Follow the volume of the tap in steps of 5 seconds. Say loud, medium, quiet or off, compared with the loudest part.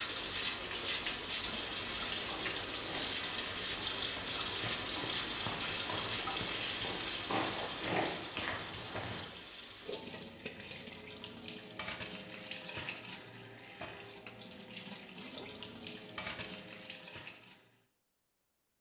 loud, loud, medium, medium.